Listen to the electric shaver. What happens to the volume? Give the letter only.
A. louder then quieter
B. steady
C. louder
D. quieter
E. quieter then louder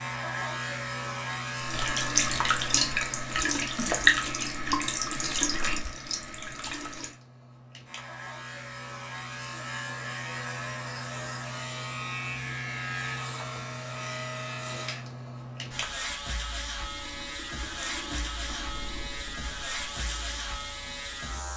E.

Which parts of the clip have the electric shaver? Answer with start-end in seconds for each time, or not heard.
0.0-21.5.